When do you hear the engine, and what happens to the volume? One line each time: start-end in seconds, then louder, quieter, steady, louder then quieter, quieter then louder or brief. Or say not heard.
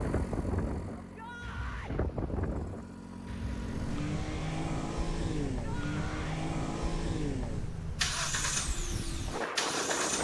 0.0-10.2 louder.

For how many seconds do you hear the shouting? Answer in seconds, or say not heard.
2 s.